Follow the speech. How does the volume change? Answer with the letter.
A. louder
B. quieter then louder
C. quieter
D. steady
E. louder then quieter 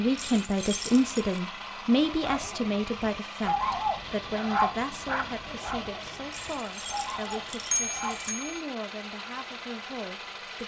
C.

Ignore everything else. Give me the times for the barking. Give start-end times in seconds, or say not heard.
1.9-8.4.